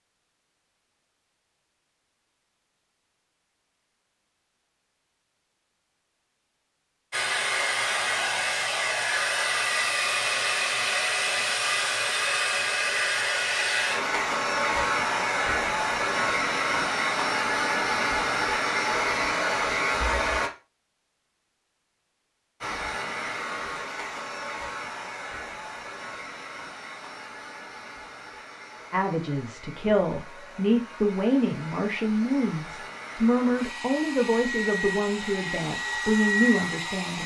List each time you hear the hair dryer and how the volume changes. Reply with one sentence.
You can hear the hair dryer from 7.1 to 20.5 s, at a steady volume; and from 22.6 to 37.2 s, getting quieter then louder.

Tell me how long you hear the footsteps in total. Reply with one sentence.
The footsteps can't be heard in this clip.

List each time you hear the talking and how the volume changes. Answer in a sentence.
The talking can be heard from 28.9 to 37.2 s, at a steady volume.